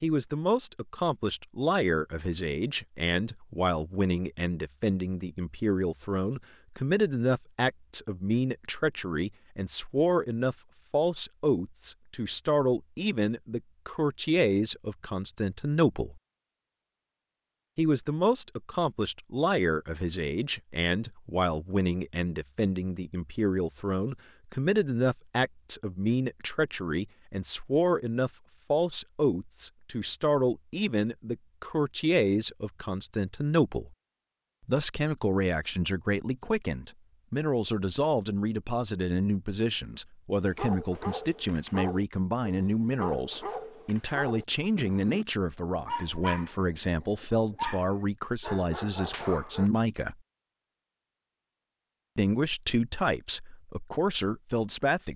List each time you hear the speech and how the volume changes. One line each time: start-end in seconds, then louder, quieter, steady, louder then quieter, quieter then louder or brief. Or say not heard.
0.0-16.2 steady
17.8-33.9 steady
34.6-50.1 steady
52.1-55.1 brief.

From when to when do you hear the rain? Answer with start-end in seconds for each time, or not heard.
not heard.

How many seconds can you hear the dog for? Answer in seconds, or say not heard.
9 s.